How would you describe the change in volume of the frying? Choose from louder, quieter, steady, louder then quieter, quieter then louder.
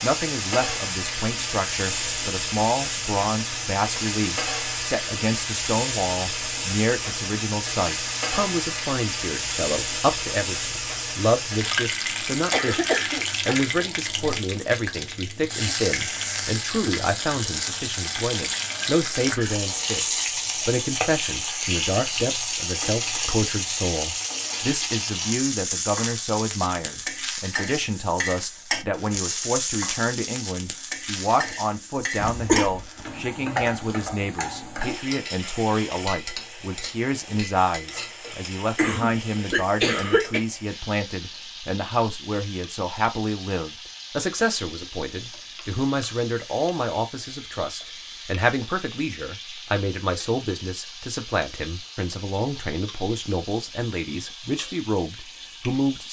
quieter.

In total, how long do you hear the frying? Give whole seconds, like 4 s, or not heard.
56 s.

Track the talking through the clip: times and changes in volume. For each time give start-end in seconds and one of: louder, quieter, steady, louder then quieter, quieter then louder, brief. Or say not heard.
0.0-56.0 steady.